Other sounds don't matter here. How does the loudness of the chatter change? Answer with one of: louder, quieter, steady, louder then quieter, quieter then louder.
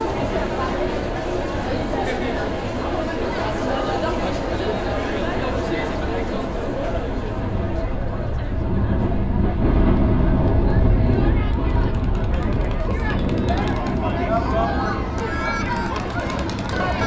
quieter then louder.